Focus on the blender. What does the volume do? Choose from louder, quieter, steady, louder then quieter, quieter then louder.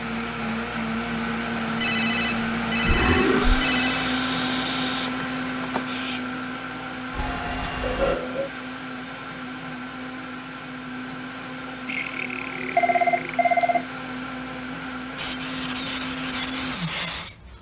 quieter.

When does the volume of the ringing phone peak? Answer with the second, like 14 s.
13 s.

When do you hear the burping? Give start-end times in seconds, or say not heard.
2.8-3.6, 7.8-8.5, 11.8-13.3.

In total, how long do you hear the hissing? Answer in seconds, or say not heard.
5 s.